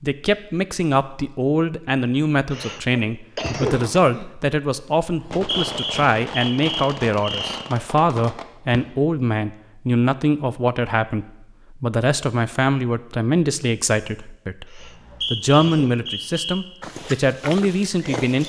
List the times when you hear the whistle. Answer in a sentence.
The whistle can be heard from 5.0 to 7.6 s and from 14.8 to 16.6 s.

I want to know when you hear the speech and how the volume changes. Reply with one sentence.
The speech can be heard from 0.0 to 18.4 s, at a steady volume.